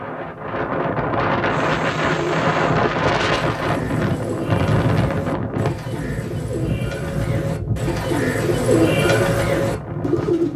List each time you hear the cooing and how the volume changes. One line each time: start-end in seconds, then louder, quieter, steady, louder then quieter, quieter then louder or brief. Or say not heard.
1.5-10.5 louder.